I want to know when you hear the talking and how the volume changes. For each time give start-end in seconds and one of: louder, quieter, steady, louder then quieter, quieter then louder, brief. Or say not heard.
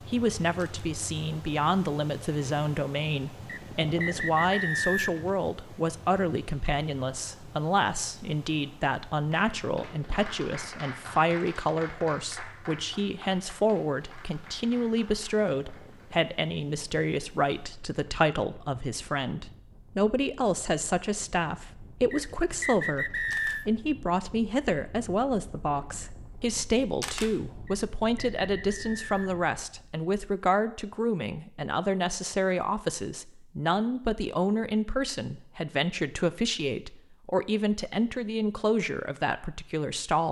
0.1-40.2 steady.